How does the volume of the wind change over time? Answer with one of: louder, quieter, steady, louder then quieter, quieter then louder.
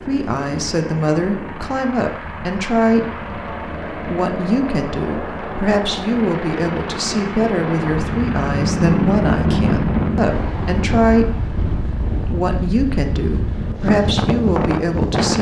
louder.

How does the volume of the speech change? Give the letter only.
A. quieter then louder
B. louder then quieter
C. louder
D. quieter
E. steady
E.